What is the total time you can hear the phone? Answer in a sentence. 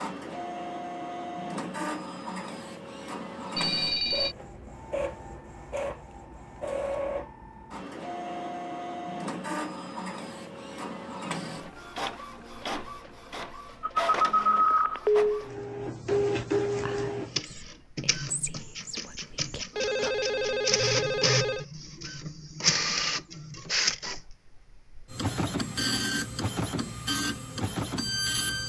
The phone can be heard for 4 seconds in total.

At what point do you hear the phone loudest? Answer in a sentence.
The loudest moment of the phone is at 15 seconds.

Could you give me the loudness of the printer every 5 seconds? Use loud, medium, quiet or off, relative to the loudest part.
medium, medium, medium, loud, loud, loud.